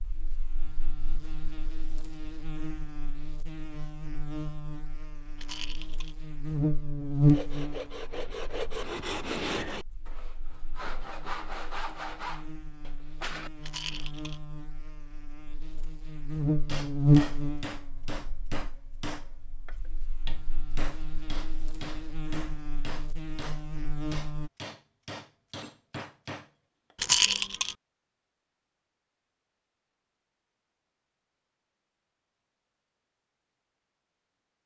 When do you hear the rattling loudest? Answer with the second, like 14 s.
27 s.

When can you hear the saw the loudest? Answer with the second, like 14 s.
9 s.